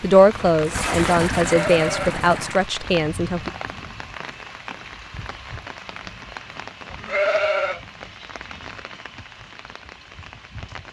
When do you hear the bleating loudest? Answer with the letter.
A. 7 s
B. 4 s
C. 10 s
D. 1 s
A.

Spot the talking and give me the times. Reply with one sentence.
You can hear the talking from 0.0 to 3.5 s.